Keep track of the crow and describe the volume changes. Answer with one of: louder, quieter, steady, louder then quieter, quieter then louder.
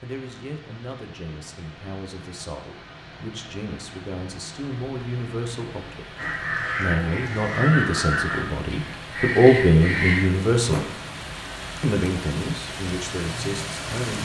steady.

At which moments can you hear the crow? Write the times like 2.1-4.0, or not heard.
6.2-10.8.